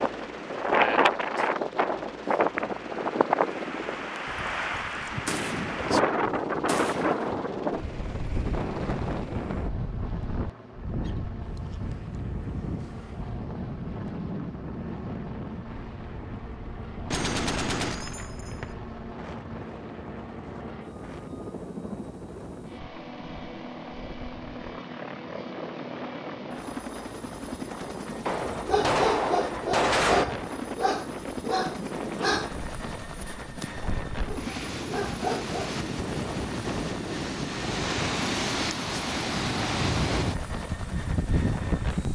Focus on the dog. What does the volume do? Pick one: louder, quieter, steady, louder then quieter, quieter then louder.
quieter then louder.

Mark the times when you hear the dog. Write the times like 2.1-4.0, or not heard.
28.6-35.8.